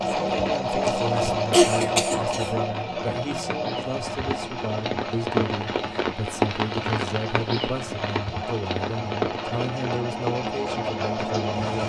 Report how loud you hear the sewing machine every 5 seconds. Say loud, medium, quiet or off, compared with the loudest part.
loud, medium, loud.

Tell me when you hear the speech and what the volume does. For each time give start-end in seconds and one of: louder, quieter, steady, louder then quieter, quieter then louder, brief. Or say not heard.
0.1-11.8 steady.